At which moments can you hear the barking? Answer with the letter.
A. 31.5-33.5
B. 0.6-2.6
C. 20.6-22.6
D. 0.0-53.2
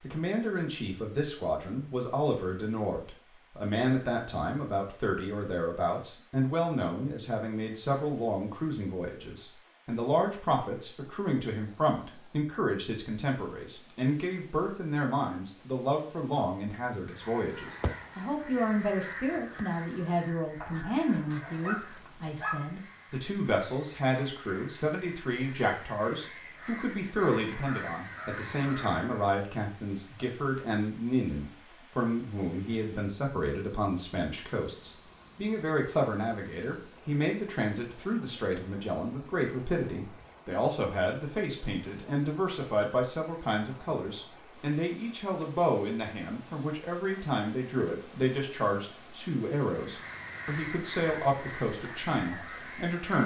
C.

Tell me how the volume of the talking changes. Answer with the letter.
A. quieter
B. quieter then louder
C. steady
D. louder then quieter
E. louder
C.